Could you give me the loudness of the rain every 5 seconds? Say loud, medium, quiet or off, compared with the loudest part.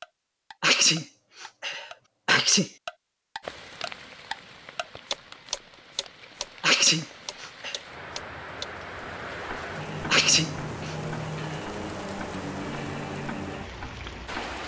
medium, medium, loud.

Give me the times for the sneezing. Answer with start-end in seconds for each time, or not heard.
0.6-2.7, 6.6-7.8, 10.1-10.9.